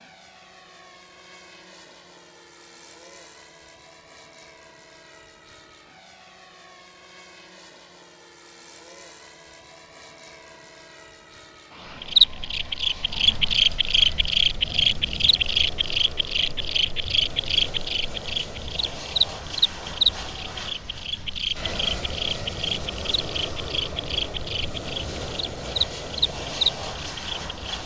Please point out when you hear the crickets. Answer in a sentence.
You can hear the crickets from 12.1 to 27.8 s.